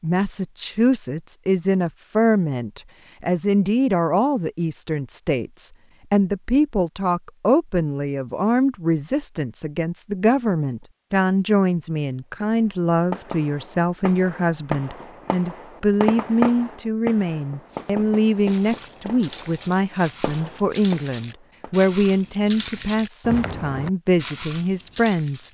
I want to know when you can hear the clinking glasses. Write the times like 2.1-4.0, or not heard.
not heard.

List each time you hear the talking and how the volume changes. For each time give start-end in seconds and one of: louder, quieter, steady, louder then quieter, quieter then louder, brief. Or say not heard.
0.0-25.4 steady.